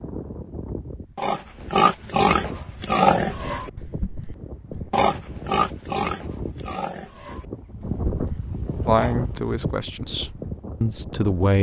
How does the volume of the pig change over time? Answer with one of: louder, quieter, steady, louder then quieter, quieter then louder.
quieter.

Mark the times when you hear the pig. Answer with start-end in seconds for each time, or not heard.
1.1-9.2.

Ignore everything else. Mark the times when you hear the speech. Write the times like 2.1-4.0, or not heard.
8.8-11.5.